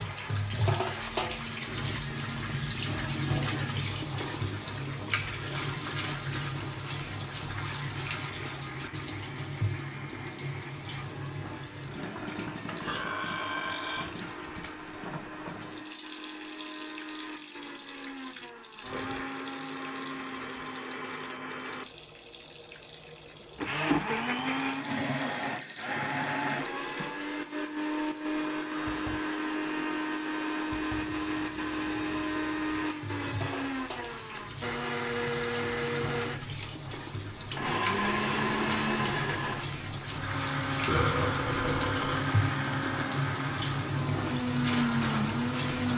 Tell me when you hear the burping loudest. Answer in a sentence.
The volume of the burping peaks at 41 seconds.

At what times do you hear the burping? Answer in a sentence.
You can hear the burping from 12.8 to 14.1 s and from 40.9 to 42.2 s.